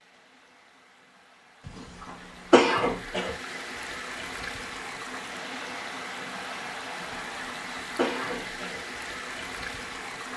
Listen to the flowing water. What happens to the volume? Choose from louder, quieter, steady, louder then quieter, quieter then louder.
louder.